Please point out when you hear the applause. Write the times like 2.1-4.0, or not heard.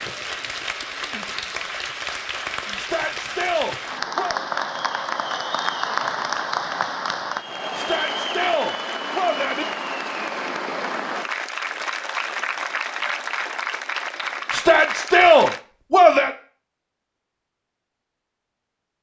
0.0-15.6.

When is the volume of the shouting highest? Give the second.
15 s.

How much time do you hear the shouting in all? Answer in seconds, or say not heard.
5 s.